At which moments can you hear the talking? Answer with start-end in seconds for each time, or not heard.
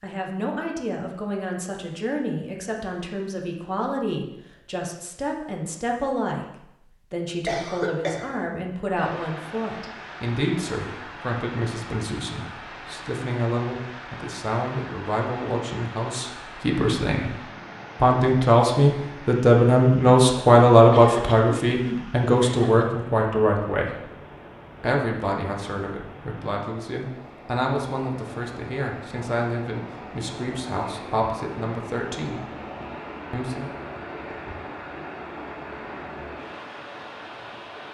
0.0-17.4, 18.0-24.1, 24.8-32.4, 33.3-33.7.